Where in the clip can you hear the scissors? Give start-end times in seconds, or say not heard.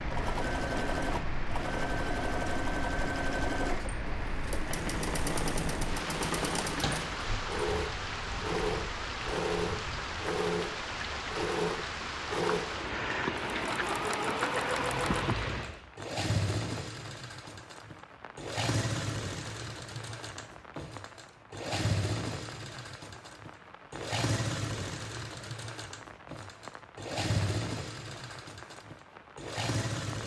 not heard.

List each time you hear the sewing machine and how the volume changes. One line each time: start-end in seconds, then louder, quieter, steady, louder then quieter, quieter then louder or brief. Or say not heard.
0.1-30.2 steady.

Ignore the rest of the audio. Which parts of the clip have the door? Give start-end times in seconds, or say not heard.
6.8-7.5.